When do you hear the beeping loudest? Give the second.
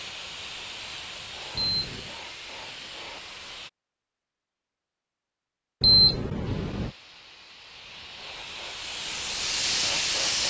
6 s.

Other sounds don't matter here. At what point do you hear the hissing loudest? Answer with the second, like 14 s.
10 s.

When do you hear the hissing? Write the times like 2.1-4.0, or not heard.
0.0-3.7, 6.5-10.4.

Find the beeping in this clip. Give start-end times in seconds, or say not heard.
1.6-2.1, 5.8-6.9.